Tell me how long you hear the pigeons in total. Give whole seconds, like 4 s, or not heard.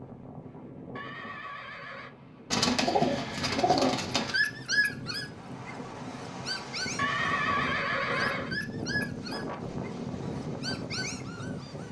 2 s.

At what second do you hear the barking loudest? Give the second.
5 s.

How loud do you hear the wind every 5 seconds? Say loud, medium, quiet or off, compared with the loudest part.
medium, loud, loud.